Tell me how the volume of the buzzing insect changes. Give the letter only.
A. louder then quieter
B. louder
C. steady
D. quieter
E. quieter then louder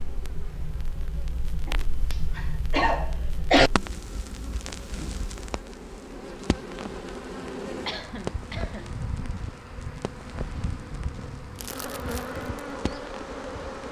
B.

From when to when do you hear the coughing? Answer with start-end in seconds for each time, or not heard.
1.6-3.7, 7.8-8.9.